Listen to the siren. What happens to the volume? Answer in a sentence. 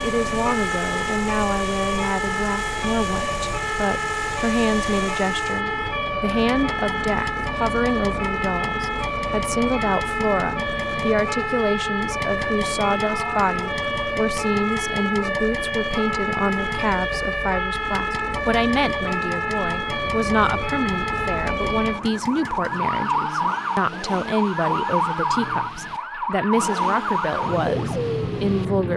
The loudness of the siren stays about the same.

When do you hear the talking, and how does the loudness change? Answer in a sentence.
The talking can be heard from 0.0 to 28.9 s, at a steady volume.